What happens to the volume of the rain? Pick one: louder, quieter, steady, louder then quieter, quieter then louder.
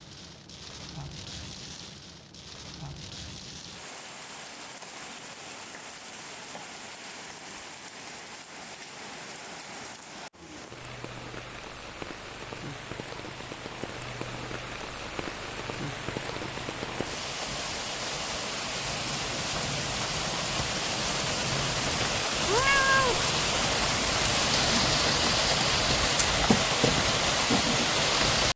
louder.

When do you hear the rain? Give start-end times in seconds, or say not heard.
0.0-28.5.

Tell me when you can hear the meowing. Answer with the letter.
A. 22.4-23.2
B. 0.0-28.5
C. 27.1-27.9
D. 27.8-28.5
A.